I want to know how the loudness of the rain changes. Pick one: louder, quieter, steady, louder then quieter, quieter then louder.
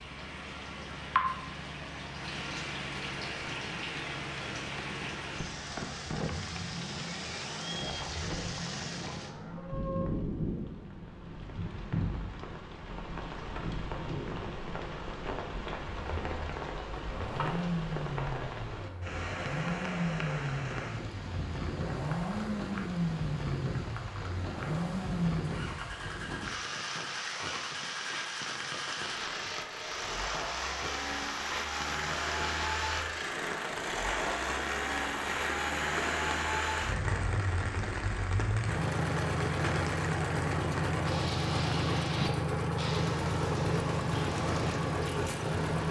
steady.